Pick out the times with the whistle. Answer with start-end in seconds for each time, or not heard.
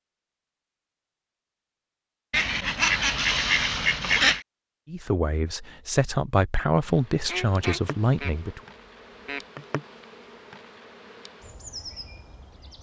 not heard.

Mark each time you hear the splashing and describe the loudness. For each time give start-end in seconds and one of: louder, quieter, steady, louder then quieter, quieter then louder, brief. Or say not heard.
not heard.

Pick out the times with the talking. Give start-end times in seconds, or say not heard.
4.8-8.6.